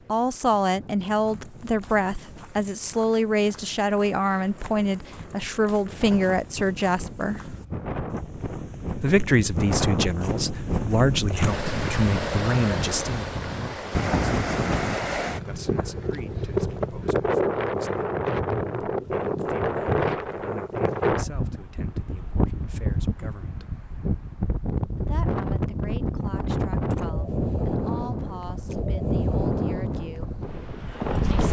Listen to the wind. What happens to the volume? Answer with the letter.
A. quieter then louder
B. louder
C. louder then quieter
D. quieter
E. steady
B.